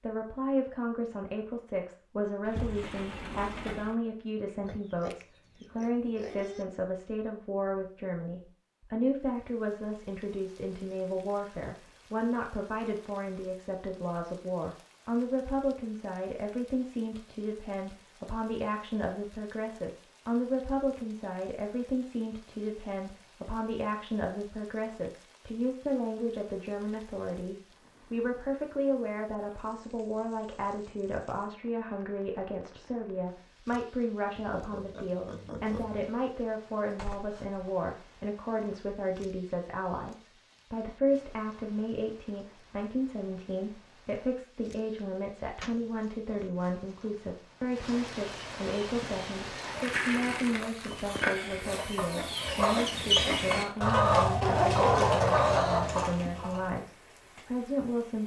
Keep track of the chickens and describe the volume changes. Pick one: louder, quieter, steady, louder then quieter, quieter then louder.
louder.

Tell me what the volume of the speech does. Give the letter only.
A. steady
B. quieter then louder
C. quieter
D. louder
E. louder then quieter
A.